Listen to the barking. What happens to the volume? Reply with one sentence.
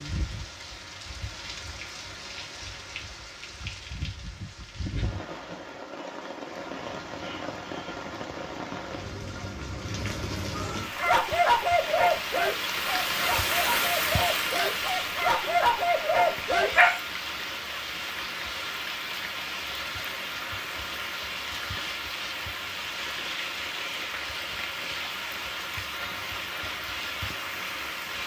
The loudness of the barking goes down, then up.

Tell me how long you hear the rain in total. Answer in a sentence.
You can hear the rain for 28 seconds altogether.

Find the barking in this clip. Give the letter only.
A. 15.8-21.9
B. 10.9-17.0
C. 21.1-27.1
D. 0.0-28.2
B.